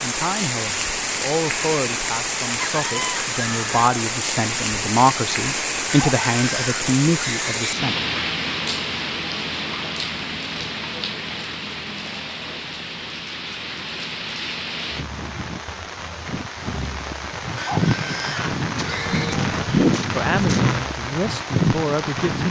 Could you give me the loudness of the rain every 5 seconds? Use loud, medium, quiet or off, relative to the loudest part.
loud, loud, medium, loud, loud.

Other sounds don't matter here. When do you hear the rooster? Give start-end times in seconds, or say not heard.
2.6-3.9.